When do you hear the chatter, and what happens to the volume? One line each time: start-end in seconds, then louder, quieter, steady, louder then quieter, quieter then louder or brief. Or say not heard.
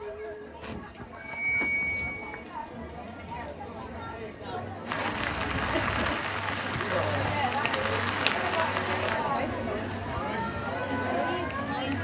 0.0-11.9 louder.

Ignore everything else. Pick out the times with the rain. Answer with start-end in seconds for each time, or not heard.
4.8-11.9.